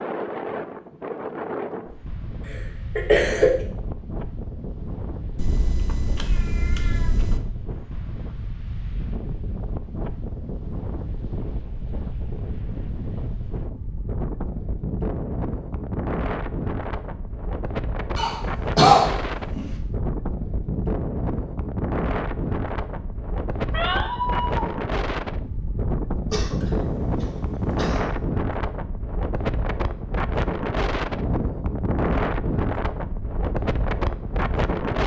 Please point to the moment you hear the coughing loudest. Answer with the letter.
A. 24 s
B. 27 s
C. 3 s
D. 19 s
D.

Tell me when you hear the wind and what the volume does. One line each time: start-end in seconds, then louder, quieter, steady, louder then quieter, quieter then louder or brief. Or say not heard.
0.0-35.0 louder.